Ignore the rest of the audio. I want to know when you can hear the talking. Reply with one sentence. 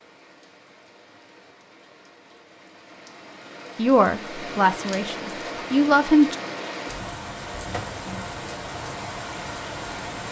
You can hear the talking from 3.8 to 6.3 s.